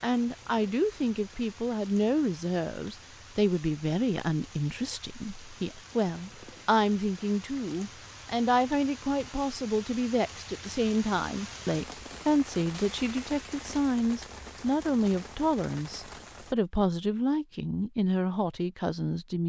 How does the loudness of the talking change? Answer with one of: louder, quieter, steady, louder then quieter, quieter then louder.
steady.